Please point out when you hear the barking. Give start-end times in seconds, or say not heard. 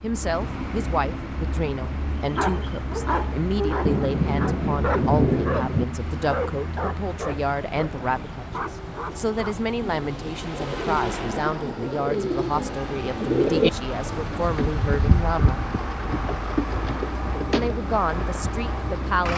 2.1-9.6.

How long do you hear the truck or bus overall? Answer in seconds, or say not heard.
19 s.